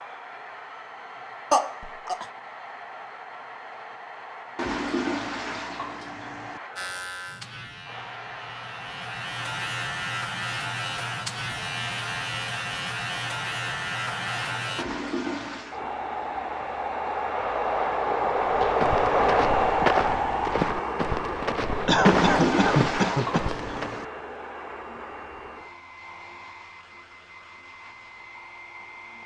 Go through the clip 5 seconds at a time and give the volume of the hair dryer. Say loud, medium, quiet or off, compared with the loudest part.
quiet, quiet, quiet, loud, medium, quiet.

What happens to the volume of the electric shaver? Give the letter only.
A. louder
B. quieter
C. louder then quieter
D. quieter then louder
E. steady
A.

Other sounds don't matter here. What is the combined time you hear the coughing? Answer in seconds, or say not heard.
2 s.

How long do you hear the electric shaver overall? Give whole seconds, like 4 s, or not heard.
8 s.